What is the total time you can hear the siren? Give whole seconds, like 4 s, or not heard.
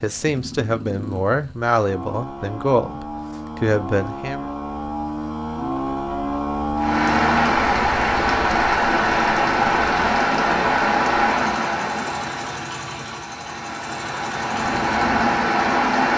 not heard.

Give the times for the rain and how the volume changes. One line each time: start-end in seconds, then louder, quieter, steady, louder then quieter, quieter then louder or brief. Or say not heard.
6.8-16.1 quieter then louder.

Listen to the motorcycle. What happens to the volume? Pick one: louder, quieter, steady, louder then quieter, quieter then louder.
louder then quieter.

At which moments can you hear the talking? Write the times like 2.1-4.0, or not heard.
0.0-4.5.